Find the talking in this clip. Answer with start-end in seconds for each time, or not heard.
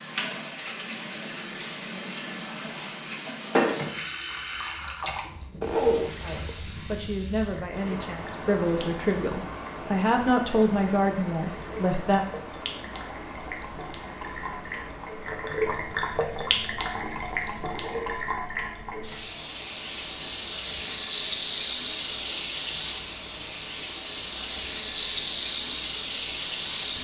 6.2-12.2.